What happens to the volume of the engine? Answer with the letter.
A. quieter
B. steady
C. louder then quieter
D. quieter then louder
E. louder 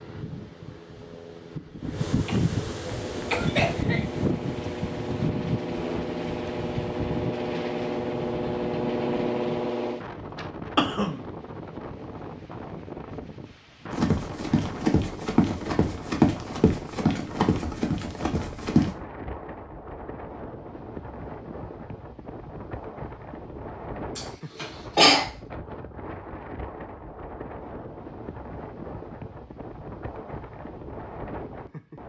E.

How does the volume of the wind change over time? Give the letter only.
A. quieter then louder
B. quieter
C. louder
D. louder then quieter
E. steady
B.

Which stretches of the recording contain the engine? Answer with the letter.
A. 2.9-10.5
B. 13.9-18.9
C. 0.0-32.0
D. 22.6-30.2
A.